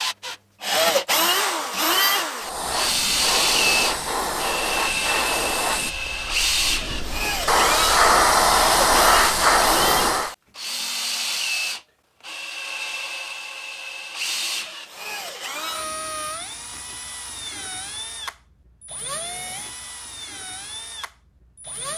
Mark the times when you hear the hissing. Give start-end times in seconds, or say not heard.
2.4-10.3.